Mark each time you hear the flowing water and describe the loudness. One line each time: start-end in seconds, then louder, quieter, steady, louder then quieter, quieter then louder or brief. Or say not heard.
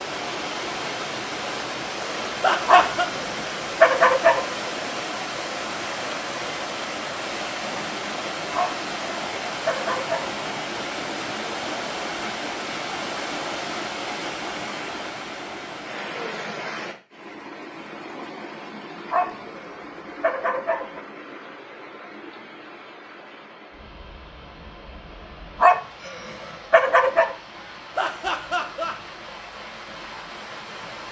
0.0-31.0 quieter.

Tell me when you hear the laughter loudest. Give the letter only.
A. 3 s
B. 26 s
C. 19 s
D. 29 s
A.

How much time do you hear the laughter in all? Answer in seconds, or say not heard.
2 s.